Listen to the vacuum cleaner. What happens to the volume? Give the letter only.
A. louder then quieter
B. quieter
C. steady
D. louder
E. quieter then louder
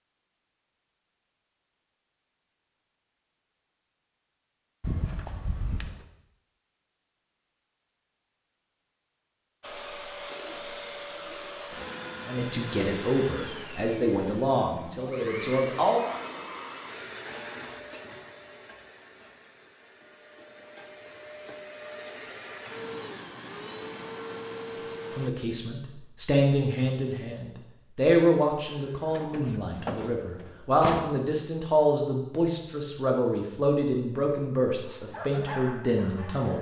E.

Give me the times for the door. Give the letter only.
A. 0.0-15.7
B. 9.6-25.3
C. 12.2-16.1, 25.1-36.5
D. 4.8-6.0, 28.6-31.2
D.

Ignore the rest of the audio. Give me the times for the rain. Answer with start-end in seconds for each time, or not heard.
not heard.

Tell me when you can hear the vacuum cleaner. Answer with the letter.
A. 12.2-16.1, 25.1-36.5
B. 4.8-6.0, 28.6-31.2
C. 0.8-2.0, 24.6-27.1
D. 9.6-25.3
D.